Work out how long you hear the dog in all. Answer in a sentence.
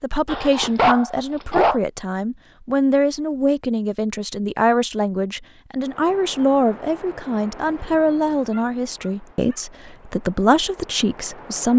You can hear the dog for 3 seconds altogether.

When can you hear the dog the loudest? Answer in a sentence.
The volume of the dog peaks at 1 second.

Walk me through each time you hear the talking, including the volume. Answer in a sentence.
The talking can be heard from 0.0 to 11.7 s, at a steady volume.